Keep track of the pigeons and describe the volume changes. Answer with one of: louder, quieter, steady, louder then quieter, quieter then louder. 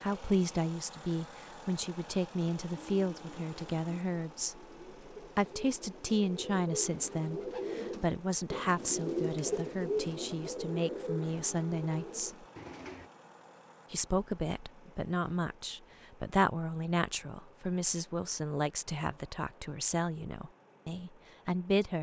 louder then quieter.